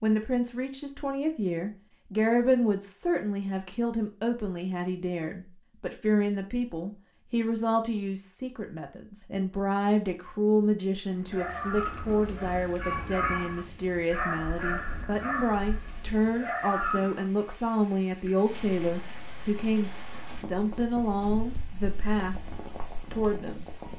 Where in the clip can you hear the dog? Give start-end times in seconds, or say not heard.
11.2-17.2.